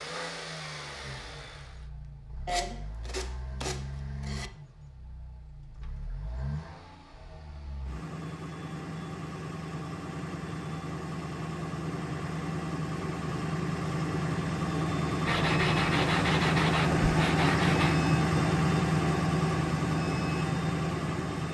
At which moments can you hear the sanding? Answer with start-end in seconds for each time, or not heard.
2.5-4.5, 15.2-17.9.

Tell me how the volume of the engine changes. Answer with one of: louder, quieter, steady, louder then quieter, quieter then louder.
louder.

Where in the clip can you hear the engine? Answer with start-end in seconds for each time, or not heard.
0.0-21.4.